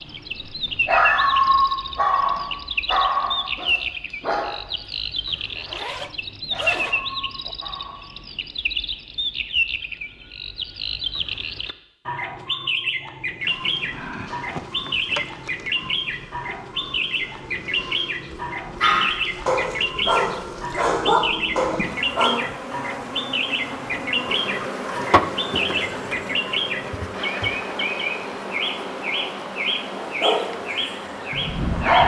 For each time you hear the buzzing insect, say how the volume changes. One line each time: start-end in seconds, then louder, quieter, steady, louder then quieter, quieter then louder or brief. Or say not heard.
13.4-31.9 louder then quieter.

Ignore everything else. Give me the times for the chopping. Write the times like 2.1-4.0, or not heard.
not heard.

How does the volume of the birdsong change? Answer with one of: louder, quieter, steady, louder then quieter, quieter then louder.
steady.